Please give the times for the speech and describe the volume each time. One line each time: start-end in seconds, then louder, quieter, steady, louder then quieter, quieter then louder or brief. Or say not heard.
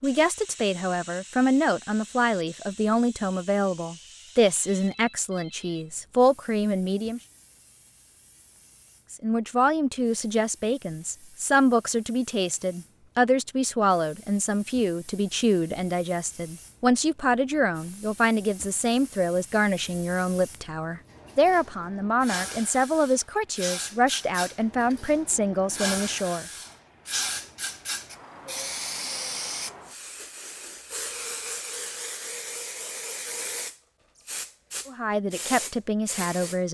0.0-7.2 steady
9.1-26.4 steady
34.9-36.6 brief.